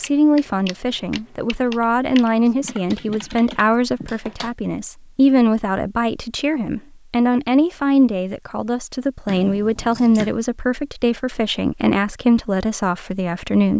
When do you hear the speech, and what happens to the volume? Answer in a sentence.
The speech can be heard from 0.0 to 13.7 s, at a steady volume.